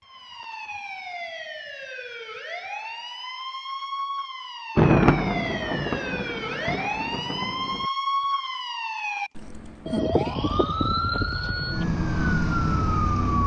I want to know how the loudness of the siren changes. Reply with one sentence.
The volume of the siren goes up.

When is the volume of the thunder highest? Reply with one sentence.
The volume of the thunder peaks at 5 seconds.